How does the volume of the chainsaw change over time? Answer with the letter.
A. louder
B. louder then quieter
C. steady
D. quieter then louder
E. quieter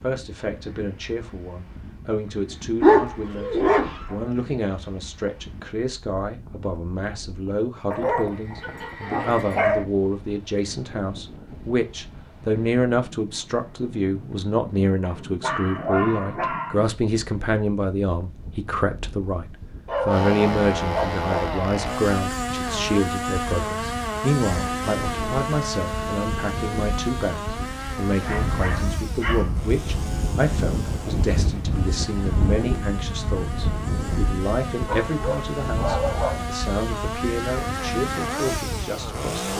D.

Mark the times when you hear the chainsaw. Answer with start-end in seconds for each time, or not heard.
20.1-39.5.